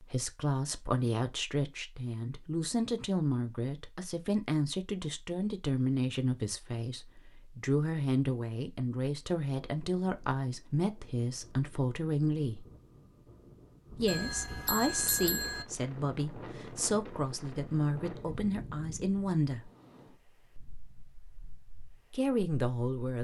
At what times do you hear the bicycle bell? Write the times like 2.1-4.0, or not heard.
14.1-15.7.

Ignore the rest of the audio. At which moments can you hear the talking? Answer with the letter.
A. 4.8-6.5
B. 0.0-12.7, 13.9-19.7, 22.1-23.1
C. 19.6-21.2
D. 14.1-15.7
B.